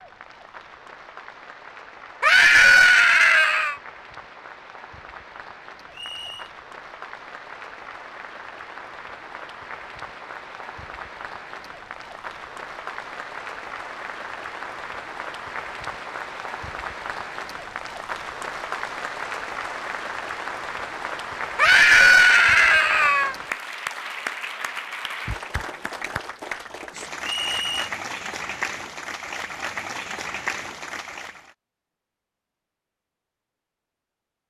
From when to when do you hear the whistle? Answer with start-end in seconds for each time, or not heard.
5.9-6.5, 27.2-27.9.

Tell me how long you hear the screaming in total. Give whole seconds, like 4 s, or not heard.
3 s.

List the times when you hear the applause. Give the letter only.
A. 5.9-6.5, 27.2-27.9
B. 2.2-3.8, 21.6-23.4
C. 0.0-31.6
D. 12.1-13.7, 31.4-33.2
C.